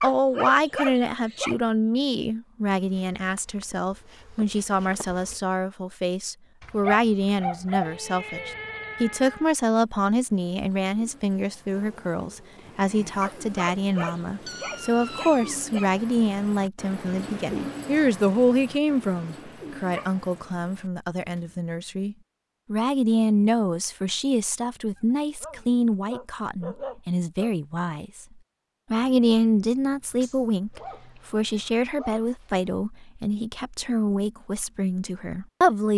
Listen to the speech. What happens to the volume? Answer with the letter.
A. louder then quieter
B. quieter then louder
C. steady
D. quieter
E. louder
C.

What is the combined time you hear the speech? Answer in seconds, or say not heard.
35 s.